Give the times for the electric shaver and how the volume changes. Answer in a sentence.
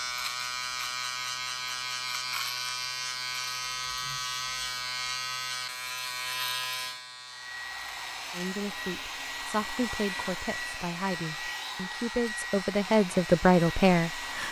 You can hear the electric shaver from 0.0 to 14.4 s, getting quieter.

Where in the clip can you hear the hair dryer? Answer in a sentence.
The hair dryer can be heard from 7.2 to 14.4 s.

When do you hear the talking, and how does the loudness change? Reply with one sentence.
The talking can be heard from 8.3 to 14.4 s, getting louder.